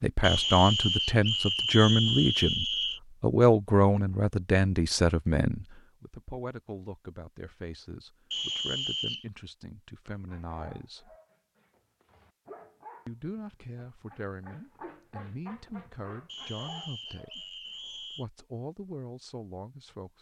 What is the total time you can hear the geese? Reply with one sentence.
The geese can't be heard in this clip.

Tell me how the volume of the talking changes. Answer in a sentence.
The volume of the talking goes down.